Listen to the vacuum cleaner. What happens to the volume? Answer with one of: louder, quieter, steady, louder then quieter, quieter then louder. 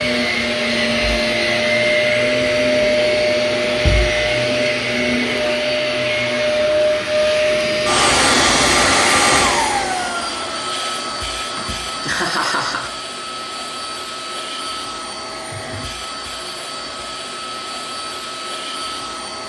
quieter.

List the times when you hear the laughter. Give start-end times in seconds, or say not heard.
11.6-12.9.